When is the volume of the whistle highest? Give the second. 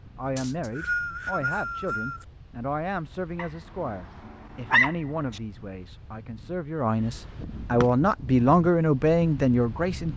1 s.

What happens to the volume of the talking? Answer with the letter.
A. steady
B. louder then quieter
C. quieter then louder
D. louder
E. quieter
D.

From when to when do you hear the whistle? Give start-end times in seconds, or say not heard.
0.3-2.2.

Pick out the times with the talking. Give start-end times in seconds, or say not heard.
0.1-10.1.